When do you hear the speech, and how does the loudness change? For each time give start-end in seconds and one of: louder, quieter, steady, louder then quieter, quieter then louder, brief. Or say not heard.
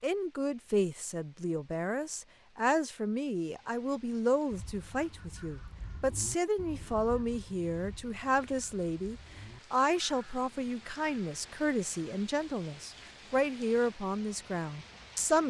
0.0-15.4 steady.